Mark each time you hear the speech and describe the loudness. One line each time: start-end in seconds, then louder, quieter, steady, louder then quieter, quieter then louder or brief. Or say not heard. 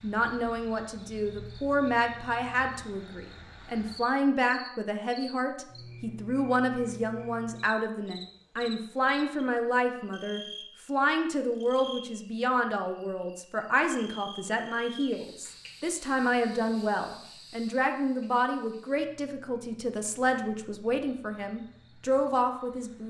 0.0-23.0 steady.